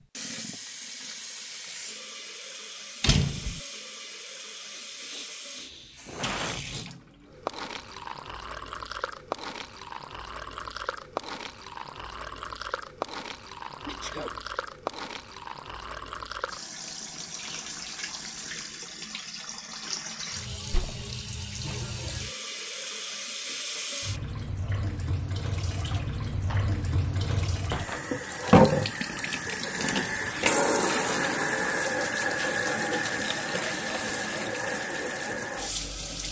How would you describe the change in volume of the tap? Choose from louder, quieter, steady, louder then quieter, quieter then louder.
louder.